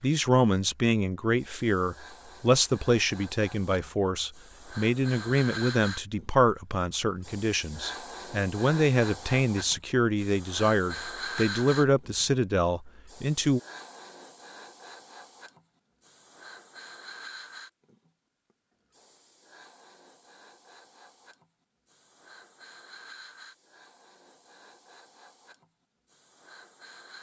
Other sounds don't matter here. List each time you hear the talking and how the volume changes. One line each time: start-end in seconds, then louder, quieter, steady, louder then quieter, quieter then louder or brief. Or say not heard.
0.0-13.6 steady.